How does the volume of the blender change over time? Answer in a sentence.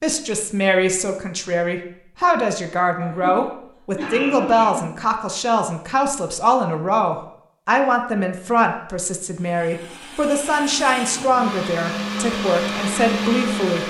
The volume of the blender goes up.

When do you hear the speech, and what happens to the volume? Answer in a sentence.
You can hear the speech from 0.0 to 13.8 s, at a steady volume.